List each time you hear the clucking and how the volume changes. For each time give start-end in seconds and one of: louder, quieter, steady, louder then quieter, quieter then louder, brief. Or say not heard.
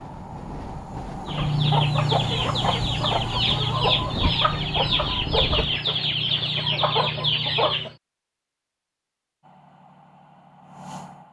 1.2-8.0 steady.